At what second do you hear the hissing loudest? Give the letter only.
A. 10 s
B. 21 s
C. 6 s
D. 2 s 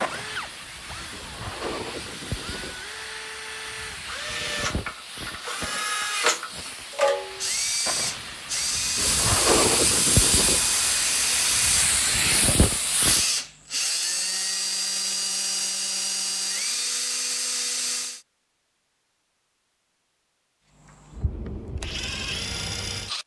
A.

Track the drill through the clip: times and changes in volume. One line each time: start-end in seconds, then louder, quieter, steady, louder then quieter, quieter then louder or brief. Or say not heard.
0.0-18.2 louder
20.8-23.2 brief.